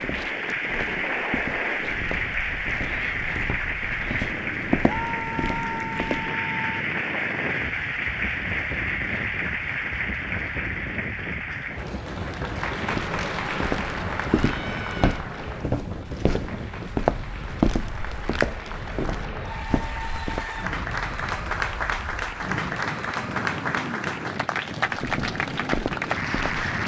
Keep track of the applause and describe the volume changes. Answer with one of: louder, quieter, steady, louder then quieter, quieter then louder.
quieter then louder.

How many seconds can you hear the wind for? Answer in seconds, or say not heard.
27 s.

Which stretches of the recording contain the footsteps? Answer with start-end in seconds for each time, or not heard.
0.0-6.3, 12.9-20.4, 24.9-26.6.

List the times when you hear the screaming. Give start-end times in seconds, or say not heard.
4.8-6.8, 14.2-15.2.